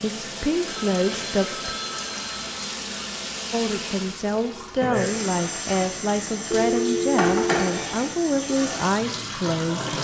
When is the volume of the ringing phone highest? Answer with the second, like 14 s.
7 s.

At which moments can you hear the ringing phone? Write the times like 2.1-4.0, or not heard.
0.7-2.7, 6.5-7.7.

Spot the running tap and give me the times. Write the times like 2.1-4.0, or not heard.
0.0-9.9.